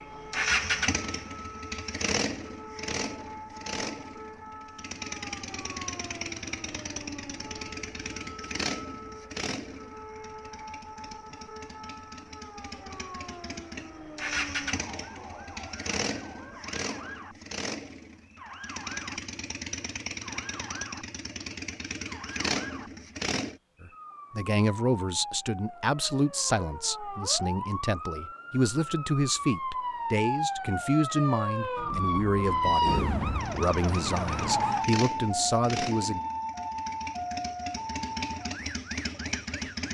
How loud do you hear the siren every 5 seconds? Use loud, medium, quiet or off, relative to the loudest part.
quiet, quiet, quiet, quiet, quiet, medium, loud, medium.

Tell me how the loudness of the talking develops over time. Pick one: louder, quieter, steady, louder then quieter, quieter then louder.
steady.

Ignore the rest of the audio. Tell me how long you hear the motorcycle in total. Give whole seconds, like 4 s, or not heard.
30 s.